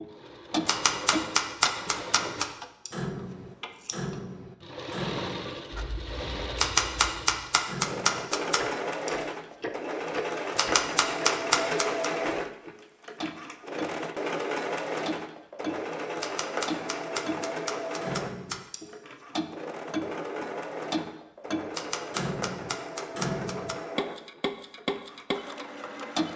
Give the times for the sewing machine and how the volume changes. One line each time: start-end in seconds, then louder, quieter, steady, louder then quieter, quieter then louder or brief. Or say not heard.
0.0-26.3 louder then quieter.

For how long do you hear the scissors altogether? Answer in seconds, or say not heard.
2 s.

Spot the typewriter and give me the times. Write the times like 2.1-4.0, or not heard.
0.7-2.5, 6.5-8.6, 10.6-12.1, 16.2-18.6, 21.7-23.8.